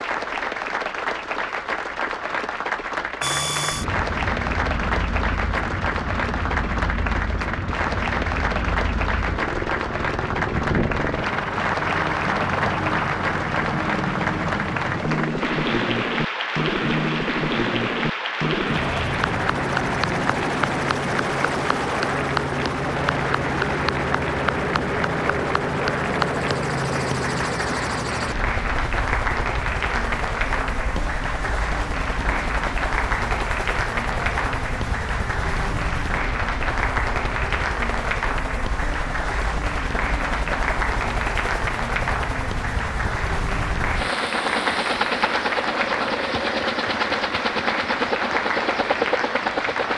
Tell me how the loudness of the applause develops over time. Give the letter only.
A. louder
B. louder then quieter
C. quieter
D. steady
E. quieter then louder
D.